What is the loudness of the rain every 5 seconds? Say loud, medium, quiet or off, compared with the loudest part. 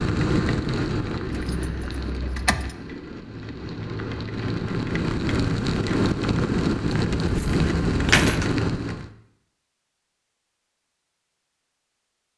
medium, loud, off.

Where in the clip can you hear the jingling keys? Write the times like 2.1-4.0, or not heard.
1.2-2.8, 6.9-8.5.